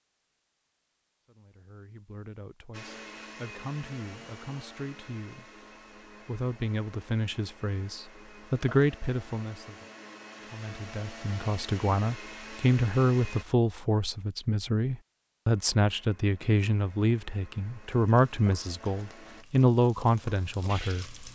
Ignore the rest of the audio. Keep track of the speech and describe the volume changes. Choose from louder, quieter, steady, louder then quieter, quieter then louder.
louder.